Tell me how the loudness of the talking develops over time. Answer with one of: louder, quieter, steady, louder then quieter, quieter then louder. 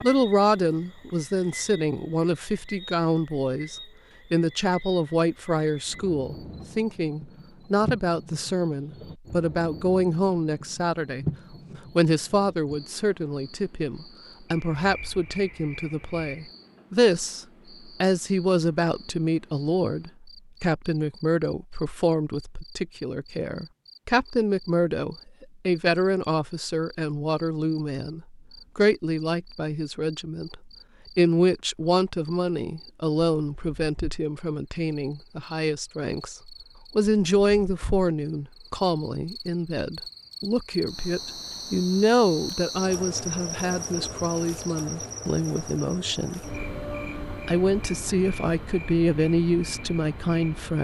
steady.